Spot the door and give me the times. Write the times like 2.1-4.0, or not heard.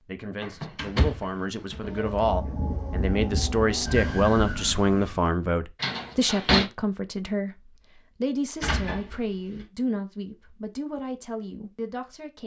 0.4-2.0, 5.8-6.7, 8.6-9.7.